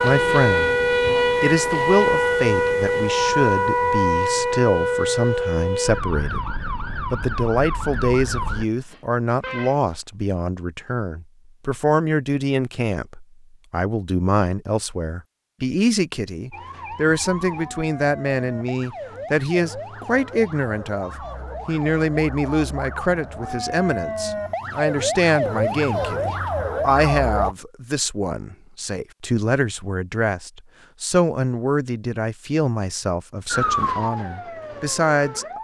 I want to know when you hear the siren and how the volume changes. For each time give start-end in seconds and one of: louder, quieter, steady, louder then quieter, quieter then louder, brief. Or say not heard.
0.0-8.7 quieter
16.5-27.6 louder
33.5-35.5 brief.